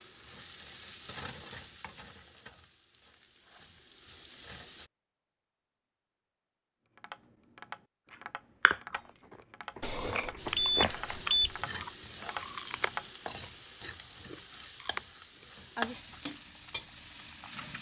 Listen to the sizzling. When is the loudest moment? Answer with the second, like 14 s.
16 s.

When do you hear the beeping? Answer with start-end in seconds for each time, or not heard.
9.8-11.6.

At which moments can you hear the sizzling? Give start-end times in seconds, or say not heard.
0.0-4.9, 10.3-17.7.